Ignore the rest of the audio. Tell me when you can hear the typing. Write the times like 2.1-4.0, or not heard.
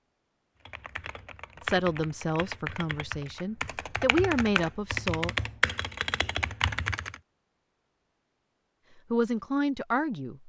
0.7-7.2.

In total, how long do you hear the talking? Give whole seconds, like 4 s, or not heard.
5 s.